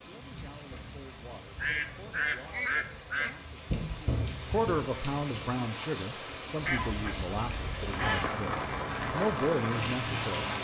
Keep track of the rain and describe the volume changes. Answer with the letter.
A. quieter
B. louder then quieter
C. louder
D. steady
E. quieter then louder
C.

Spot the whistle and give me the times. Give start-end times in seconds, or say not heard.
not heard.